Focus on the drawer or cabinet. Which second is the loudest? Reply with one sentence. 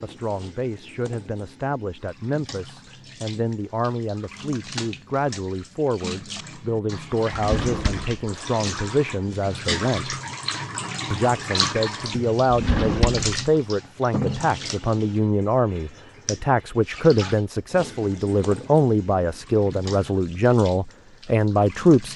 The loudest moment of the drawer or cabinet is at 13 seconds.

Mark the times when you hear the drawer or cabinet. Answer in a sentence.
The drawer or cabinet can be heard from 7.3 to 8.2 s and from 12.5 to 13.3 s.